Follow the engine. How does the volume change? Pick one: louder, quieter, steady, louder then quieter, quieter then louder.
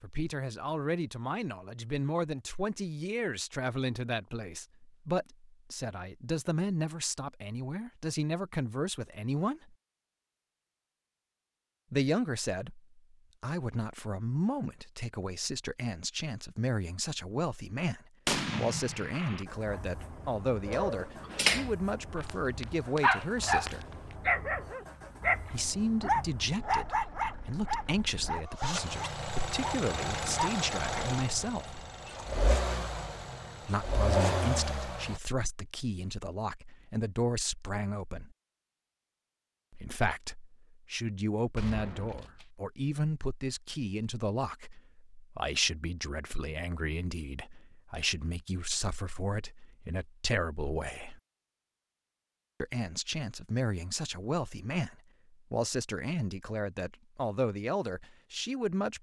louder.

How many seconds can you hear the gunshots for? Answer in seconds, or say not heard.
2 s.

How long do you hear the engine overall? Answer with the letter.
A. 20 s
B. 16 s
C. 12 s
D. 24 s
B.